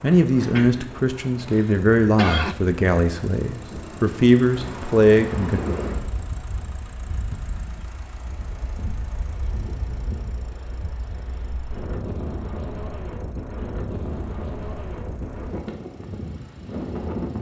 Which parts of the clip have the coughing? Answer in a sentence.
You can hear the coughing from 0.6 to 2.5 s.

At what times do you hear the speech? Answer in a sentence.
The speech can be heard from 0.0 to 5.6 s.